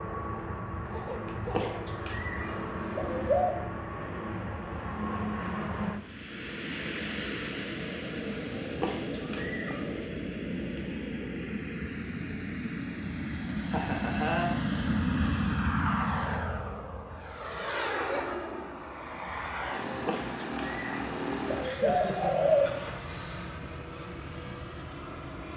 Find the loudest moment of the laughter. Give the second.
14 s.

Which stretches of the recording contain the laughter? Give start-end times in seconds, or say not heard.
0.9-1.9, 13.7-14.6, 21.6-23.6.